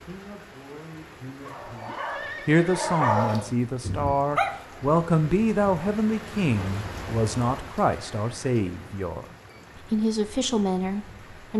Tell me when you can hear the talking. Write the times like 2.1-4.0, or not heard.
0.0-9.2, 9.8-11.5.